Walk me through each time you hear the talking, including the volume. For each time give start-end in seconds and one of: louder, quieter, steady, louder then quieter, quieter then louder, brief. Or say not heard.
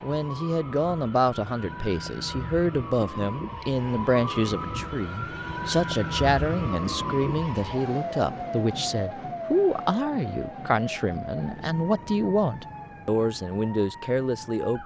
0.0-14.8 steady.